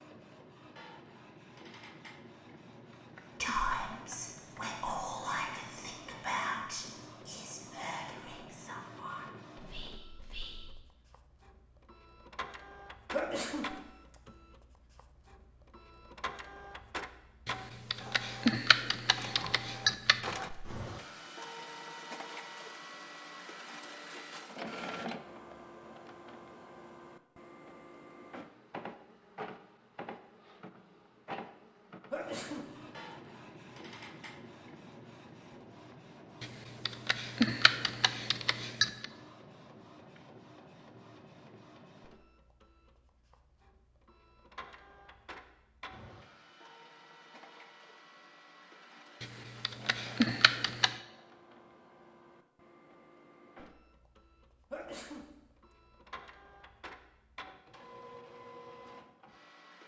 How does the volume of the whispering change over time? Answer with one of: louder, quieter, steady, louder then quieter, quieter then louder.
quieter.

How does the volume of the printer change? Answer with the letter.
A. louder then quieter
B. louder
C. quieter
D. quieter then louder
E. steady
A.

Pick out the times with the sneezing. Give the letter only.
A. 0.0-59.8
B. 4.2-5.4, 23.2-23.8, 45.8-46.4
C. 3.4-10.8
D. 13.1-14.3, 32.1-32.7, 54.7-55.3
D.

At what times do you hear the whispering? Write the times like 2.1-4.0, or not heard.
3.4-10.8.